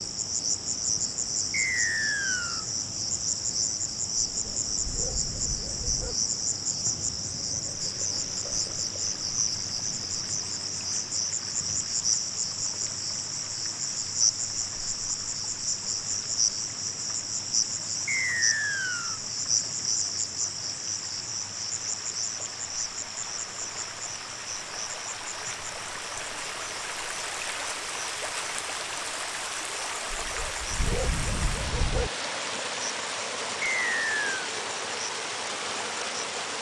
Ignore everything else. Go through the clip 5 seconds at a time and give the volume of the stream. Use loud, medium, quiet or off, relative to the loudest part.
quiet, quiet, quiet, quiet, medium, loud, loud, loud.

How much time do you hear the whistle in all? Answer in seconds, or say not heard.
3 s.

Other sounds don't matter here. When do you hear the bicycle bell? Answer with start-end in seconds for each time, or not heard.
not heard.